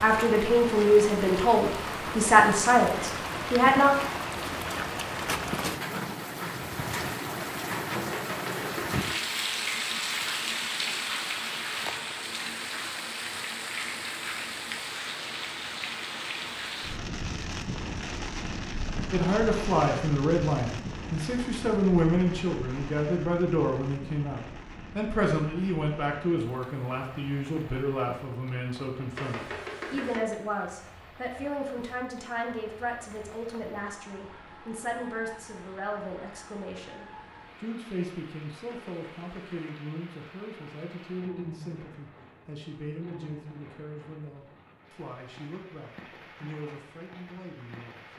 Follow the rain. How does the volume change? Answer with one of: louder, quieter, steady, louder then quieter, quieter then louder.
quieter.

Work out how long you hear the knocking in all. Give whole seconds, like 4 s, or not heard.
3 s.